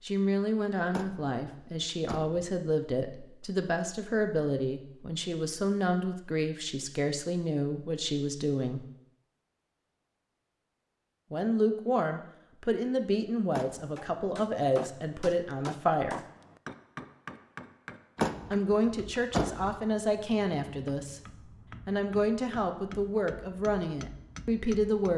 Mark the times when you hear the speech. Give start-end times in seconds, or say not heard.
0.0-8.8, 11.3-16.2, 18.5-21.2, 21.9-25.1.